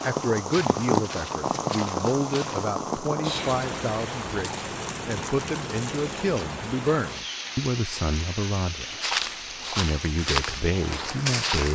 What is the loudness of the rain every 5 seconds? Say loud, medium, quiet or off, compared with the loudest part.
loud, medium, medium.